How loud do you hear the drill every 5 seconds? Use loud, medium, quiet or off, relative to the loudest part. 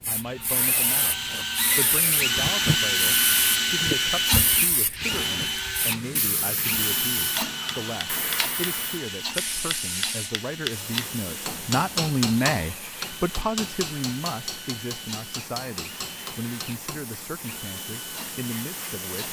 loud, medium, quiet, quiet.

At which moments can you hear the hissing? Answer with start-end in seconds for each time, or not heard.
0.0-19.2.